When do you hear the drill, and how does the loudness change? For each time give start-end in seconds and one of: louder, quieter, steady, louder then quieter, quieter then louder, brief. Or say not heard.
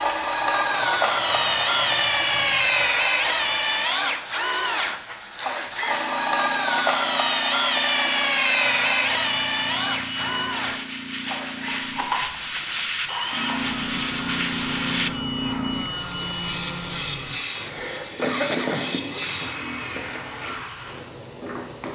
0.0-21.9 quieter.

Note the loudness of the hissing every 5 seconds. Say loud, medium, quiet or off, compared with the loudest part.
medium, medium, loud, loud, quiet.